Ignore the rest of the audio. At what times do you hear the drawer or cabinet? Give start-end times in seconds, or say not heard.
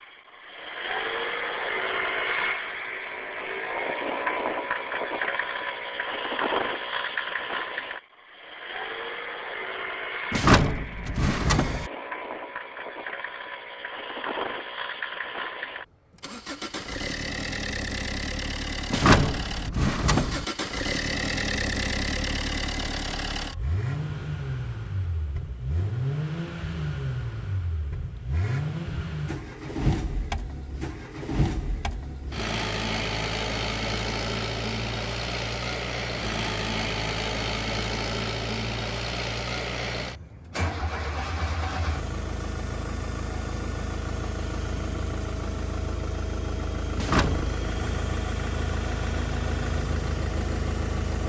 10.3-11.9, 18.9-20.4, 47.0-48.0.